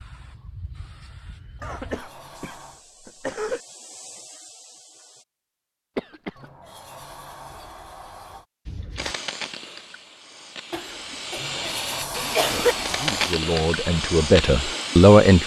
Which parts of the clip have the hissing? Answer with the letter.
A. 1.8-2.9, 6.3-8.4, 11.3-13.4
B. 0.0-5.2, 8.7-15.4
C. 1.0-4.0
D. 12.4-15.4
B.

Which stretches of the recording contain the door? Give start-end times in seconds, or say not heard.
1.8-2.9, 6.3-8.4, 11.3-13.4.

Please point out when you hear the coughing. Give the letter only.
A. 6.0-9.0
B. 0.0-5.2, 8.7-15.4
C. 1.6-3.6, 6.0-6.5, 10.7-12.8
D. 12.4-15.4
C.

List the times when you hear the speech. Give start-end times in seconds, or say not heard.
12.4-15.4.